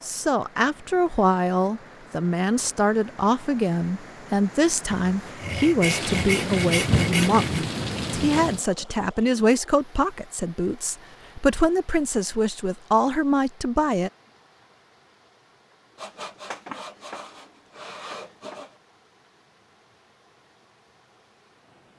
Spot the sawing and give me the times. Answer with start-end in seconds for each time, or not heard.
4.9-7.7, 15.9-18.8.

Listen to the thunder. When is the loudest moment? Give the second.
7 s.